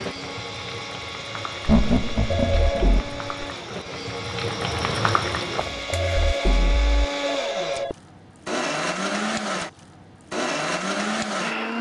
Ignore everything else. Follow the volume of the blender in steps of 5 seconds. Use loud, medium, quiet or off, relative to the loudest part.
medium, loud, loud.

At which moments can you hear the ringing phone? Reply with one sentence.
You can hear the ringing phone from 2.3 to 3.0 s and from 5.9 to 8.0 s.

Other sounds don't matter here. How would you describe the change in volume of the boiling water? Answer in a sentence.
The loudness of the boiling water goes up.